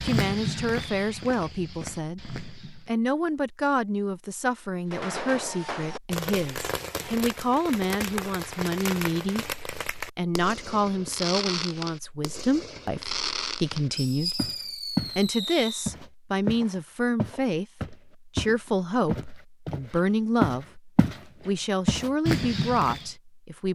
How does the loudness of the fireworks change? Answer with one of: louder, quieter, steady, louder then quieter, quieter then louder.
steady.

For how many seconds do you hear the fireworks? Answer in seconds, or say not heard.
11 s.